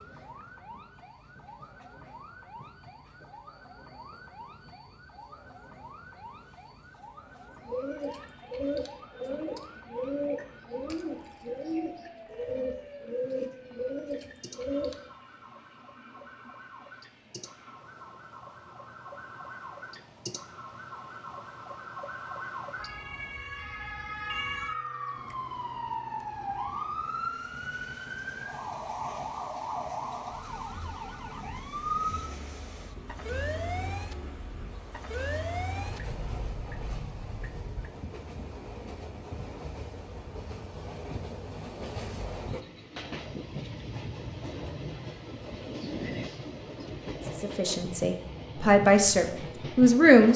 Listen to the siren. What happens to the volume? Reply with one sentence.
The volume of the siren goes up.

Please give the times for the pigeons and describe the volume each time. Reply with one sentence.
The pigeons can be heard from 7.7 to 15.0 s, at a steady volume.